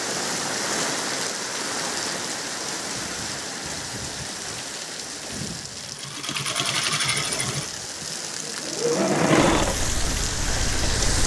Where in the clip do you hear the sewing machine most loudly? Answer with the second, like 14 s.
9 s.